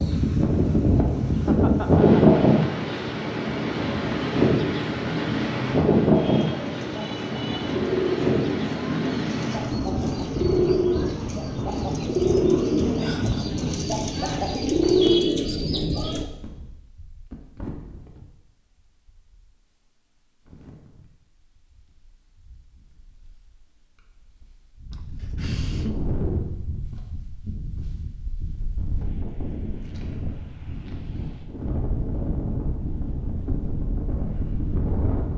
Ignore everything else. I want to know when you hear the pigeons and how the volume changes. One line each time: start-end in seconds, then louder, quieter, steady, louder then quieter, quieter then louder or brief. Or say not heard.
6.1-16.2 louder.